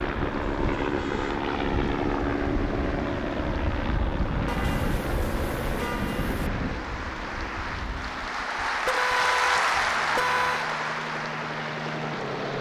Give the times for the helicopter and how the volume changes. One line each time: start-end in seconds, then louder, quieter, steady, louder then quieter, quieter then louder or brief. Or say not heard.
0.0-12.5 quieter then louder.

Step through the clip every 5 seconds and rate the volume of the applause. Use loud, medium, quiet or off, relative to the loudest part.
quiet, loud, loud.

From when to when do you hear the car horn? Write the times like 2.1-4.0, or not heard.
0.4-1.4, 4.5-6.5, 8.8-10.7.